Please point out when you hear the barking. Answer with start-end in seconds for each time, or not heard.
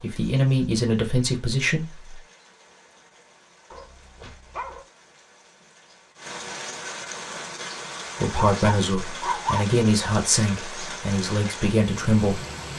3.7-4.8, 8.3-9.7.